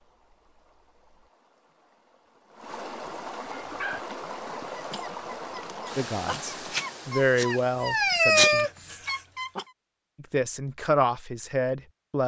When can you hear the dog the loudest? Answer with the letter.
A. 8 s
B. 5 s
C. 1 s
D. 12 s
A.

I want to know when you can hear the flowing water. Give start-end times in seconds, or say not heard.
0.0-8.3.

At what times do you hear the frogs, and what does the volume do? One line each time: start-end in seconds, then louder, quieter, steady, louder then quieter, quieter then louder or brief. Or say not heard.
not heard.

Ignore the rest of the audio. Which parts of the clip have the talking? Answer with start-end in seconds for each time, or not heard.
6.0-8.7, 10.2-12.2.